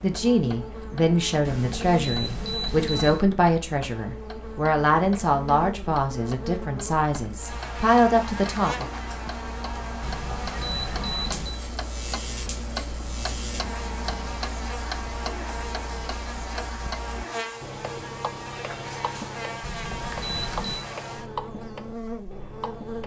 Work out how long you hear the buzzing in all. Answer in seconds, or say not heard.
23 s.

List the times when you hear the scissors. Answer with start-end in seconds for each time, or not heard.
not heard.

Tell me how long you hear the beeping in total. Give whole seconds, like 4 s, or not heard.
5 s.